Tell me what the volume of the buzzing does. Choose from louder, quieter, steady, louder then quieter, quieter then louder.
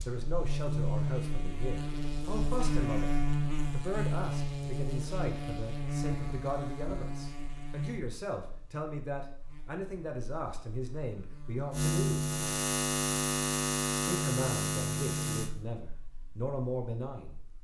quieter then louder.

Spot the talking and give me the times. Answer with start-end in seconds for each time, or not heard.
0.1-12.2, 14.1-17.6.